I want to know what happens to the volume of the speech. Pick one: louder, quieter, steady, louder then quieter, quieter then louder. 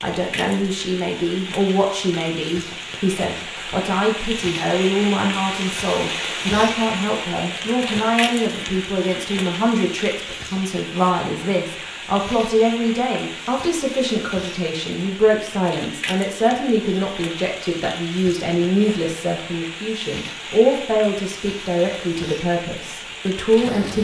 steady.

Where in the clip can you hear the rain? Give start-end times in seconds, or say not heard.
0.0-23.9.